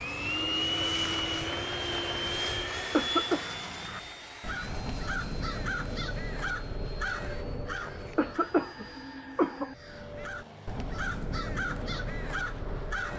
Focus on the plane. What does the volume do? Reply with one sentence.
The volume of the plane goes down.